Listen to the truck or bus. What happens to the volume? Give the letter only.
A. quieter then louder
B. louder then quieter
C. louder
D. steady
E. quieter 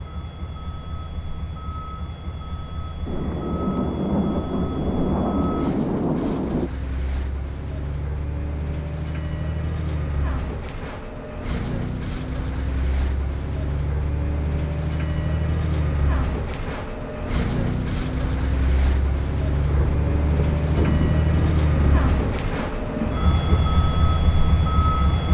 C.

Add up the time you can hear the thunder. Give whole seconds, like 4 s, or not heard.
7 s.